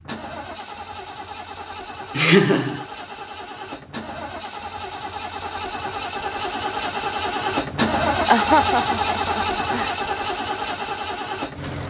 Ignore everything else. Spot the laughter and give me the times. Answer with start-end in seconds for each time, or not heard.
2.1-2.9, 8.2-9.9.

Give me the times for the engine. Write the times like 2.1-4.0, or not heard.
0.0-11.8.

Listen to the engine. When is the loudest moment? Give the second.
8 s.